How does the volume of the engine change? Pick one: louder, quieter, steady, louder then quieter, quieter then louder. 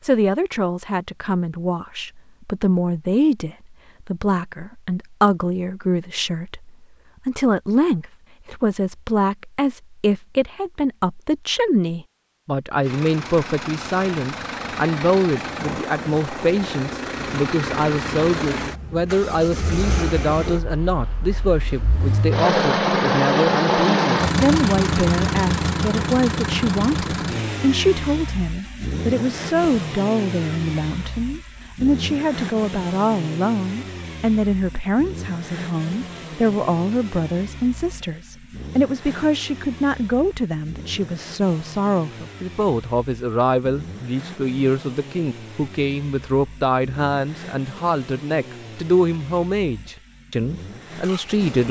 louder then quieter.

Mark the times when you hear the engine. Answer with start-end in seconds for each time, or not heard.
12.8-51.6.